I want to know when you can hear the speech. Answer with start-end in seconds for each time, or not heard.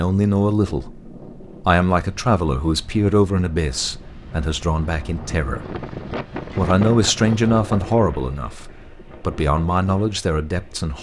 0.0-5.8, 6.5-10.9.